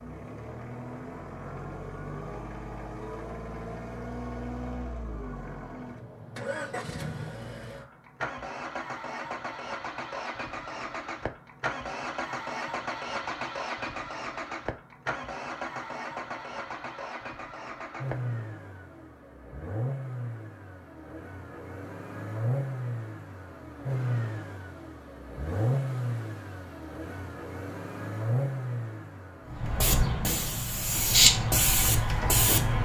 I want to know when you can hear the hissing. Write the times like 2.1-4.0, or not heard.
29.5-32.8.